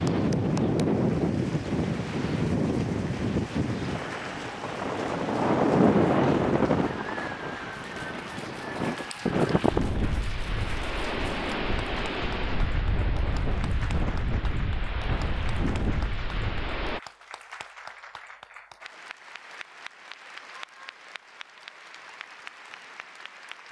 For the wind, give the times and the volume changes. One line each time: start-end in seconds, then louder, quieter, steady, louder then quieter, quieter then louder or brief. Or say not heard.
0.0-17.0 quieter.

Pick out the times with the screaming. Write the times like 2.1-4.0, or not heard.
not heard.